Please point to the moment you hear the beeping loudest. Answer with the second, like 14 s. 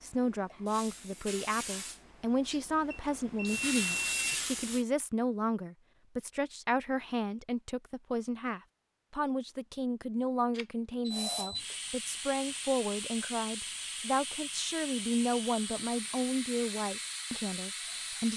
4 s.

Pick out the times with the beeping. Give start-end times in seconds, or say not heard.
2.9-4.4, 10.6-11.8.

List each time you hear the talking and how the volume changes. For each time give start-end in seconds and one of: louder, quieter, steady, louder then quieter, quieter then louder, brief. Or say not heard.
0.0-18.3 steady.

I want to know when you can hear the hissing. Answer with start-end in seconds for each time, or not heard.
0.0-4.8, 11.1-18.3.